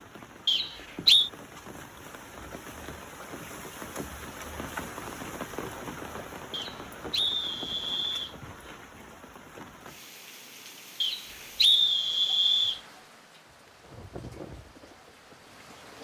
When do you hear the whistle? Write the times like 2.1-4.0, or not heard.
0.5-1.3, 6.5-8.3, 11.0-12.8.